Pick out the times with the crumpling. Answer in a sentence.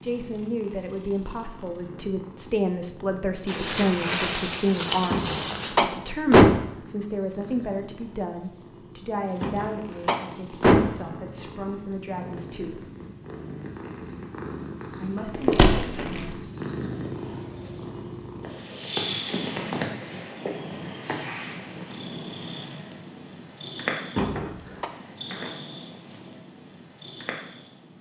You can hear the crumpling from 3.5 to 5.8 s and from 15.3 to 16.4 s.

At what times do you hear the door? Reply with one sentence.
The door can be heard from 5.1 to 6.7 s, from 9.4 to 11.0 s and from 24.1 to 24.9 s.